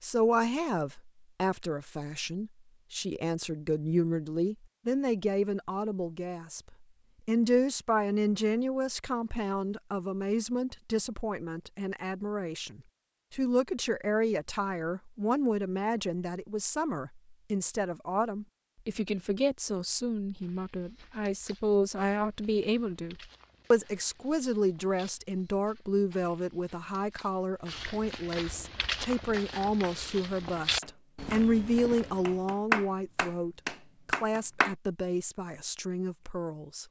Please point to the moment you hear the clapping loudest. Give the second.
33 s.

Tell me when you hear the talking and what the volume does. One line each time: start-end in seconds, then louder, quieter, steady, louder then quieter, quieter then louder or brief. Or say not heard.
0.0-36.8 steady.